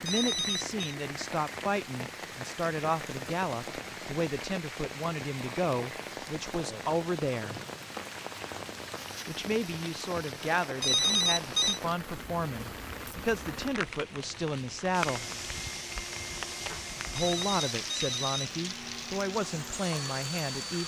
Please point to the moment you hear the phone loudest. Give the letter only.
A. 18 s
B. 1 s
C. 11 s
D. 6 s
C.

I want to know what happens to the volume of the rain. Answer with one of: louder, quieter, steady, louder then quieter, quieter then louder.
steady.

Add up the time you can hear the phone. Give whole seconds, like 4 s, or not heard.
3 s.